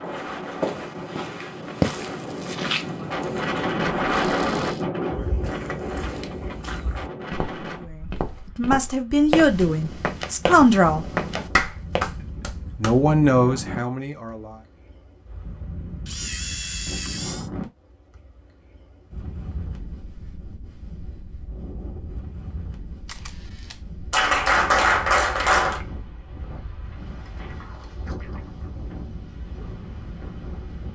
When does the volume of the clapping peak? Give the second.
25 s.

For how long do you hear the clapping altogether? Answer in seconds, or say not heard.
3 s.